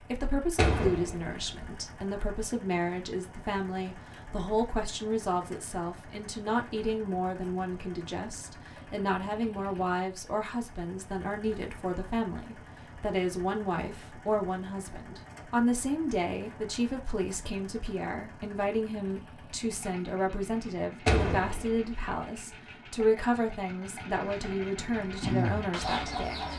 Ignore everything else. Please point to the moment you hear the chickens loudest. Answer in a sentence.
The volume of the chickens peaks at 25 seconds.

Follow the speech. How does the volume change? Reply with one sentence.
The volume of the speech stays about the same.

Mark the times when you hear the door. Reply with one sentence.
The door can be heard from 0.6 to 1.4 s and from 21.1 to 22.1 s.